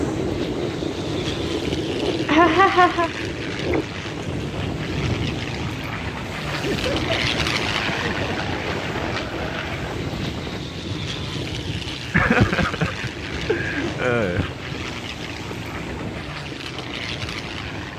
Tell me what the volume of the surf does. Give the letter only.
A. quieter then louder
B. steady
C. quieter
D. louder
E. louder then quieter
C.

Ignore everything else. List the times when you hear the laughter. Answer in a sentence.
The laughter can be heard from 2.2 to 3.1 s, from 6.5 to 8.3 s and from 12.1 to 14.5 s.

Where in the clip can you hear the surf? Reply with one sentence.
You can hear the surf from 0.0 to 17.9 s.